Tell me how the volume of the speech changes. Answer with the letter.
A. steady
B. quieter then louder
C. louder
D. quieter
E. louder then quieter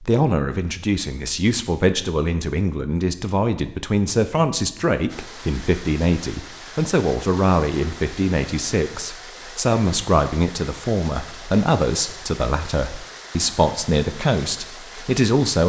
A.